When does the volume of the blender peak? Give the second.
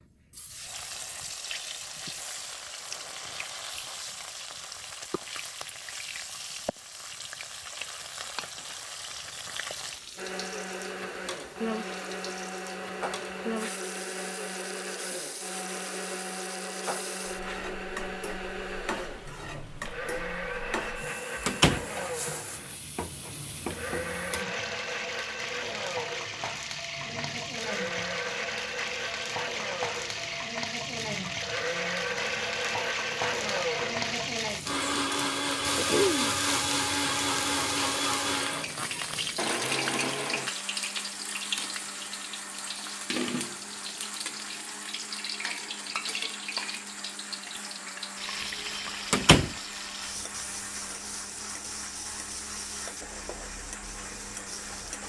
36 s.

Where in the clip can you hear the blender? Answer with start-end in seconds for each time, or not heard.
10.2-55.0.